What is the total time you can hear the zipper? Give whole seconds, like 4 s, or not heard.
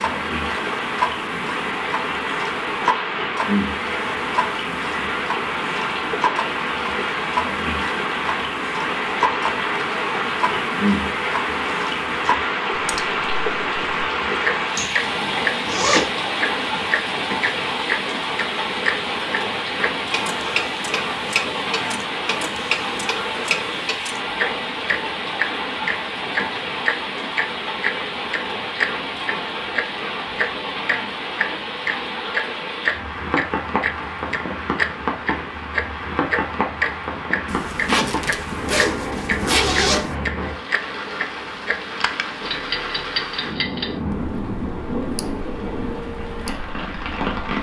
4 s.